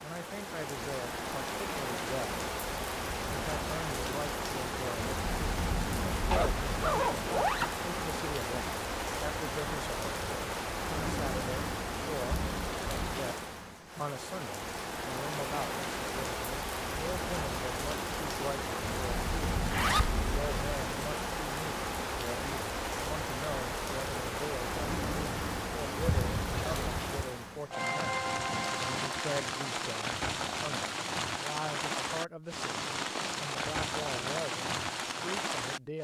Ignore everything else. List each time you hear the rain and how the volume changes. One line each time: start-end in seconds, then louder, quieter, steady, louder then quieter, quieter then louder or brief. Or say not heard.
0.0-36.0 steady.